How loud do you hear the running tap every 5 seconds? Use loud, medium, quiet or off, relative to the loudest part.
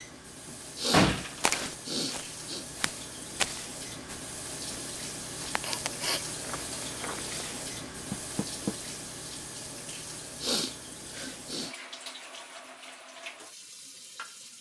loud, loud, medium.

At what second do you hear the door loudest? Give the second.
1 s.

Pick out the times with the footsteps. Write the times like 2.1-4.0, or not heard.
1.4-7.4.